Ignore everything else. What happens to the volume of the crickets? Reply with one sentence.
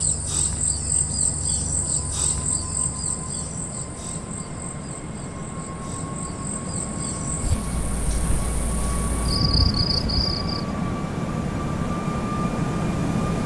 The volume of the crickets goes down, then up.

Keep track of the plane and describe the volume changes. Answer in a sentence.
The loudness of the plane goes up.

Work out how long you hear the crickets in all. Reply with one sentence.
You can hear the crickets for 11 seconds altogether.